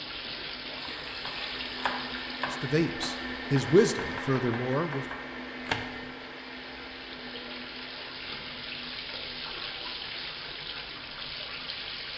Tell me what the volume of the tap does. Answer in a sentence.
The loudness of the tap goes down, then up.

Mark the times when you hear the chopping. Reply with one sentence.
The chopping can be heard from 0.8 to 6.0 s.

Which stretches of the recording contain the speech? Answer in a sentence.
The speech can be heard from 2.5 to 5.0 s.